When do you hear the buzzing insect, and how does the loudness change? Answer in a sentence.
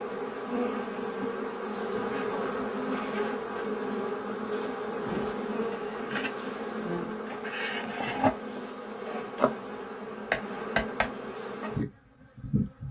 You can hear the buzzing insect from 0.0 to 12.8 s, at a steady volume.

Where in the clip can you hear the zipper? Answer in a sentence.
You can hear the zipper from 1.9 to 3.7 s.